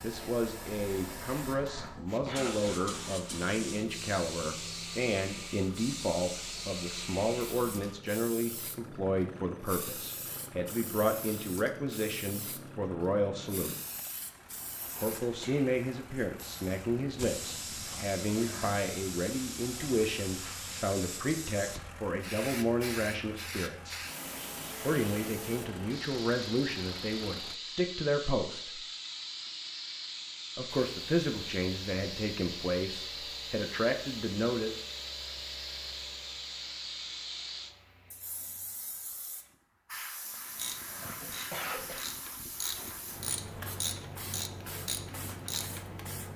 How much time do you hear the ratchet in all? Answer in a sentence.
You can hear the ratchet for 5 seconds altogether.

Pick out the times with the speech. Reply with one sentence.
The speech can be heard from 0.0 to 13.8 s, from 14.9 to 24.0 s, from 24.8 to 28.8 s and from 30.6 to 34.8 s.